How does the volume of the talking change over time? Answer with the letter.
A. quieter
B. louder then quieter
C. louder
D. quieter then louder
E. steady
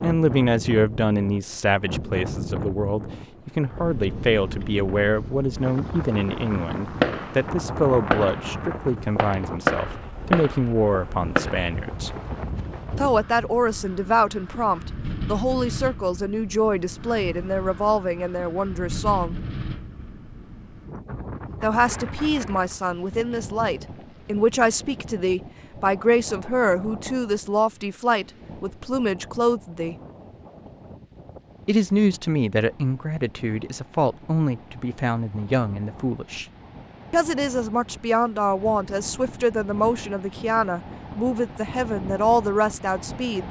E.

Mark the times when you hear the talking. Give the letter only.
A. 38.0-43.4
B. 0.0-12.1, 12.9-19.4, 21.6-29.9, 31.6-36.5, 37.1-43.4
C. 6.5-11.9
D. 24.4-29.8
B.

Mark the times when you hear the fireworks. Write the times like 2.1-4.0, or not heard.
6.5-11.9.